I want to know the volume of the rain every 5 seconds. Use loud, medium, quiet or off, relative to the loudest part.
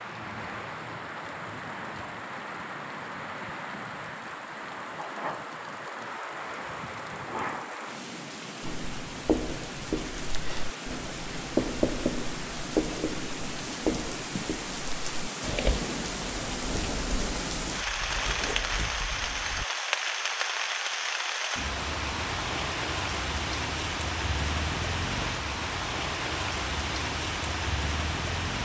medium, medium, medium, loud, loud, loud.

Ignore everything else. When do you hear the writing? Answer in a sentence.
You can hear the writing from 8.6 to 19.6 s.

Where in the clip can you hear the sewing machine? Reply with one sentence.
The sewing machine can't be heard in this clip.